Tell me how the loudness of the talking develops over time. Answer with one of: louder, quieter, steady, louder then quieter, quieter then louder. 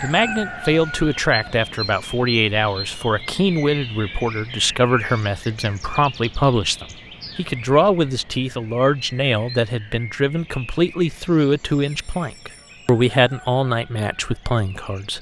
steady.